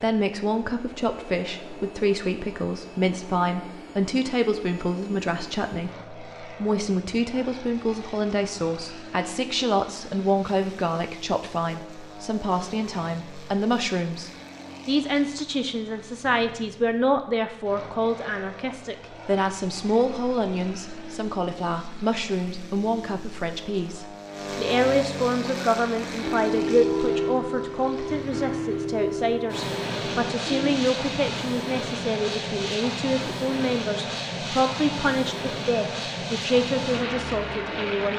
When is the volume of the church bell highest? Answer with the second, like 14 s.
27 s.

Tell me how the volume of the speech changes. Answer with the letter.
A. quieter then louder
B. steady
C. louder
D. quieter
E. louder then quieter
B.